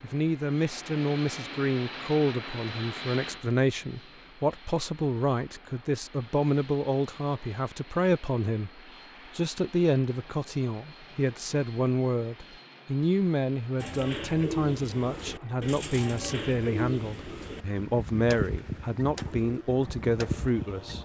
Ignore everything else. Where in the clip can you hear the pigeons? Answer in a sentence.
The pigeons can be heard from 13.8 to 20.9 s.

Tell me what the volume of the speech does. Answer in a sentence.
The loudness of the speech stays about the same.